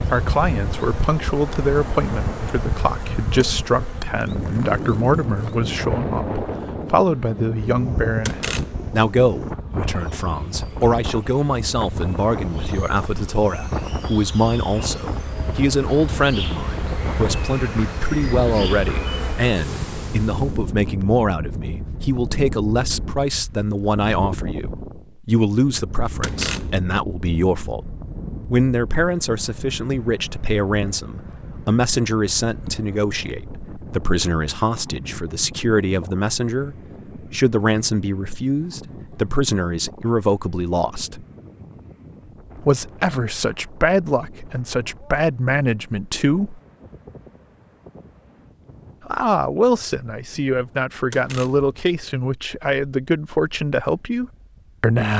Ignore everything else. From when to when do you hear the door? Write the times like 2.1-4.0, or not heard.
8.2-8.9, 26.2-26.9, 51.1-51.7.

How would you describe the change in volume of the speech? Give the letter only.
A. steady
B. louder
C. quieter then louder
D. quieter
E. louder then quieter
A.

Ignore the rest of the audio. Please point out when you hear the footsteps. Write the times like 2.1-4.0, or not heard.
not heard.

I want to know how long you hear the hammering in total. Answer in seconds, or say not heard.
not heard.